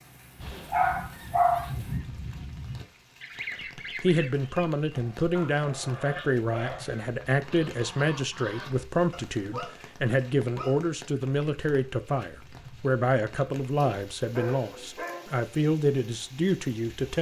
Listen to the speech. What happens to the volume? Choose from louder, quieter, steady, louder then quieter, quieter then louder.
steady.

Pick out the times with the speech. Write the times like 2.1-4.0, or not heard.
4.0-17.1.